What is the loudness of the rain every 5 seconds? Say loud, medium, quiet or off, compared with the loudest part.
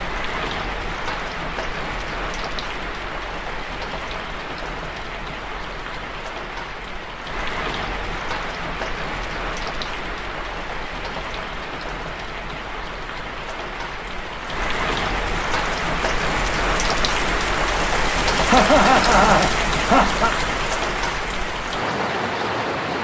medium, medium, medium, loud, loud.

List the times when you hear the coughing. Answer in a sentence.
You can hear the coughing from 18.4 to 20.4 s.